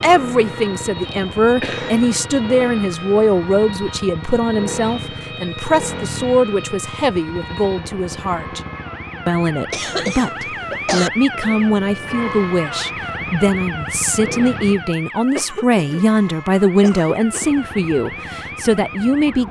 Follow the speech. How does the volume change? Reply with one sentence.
The volume of the speech stays about the same.